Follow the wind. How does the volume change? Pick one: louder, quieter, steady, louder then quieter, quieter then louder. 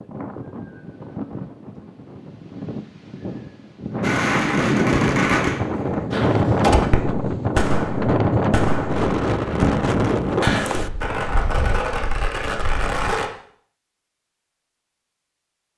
louder.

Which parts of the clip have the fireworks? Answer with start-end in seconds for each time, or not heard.
4.0-13.3.